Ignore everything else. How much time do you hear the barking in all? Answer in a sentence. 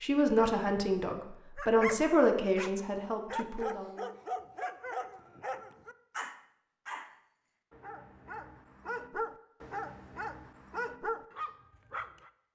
The barking can be heard for 11 seconds in total.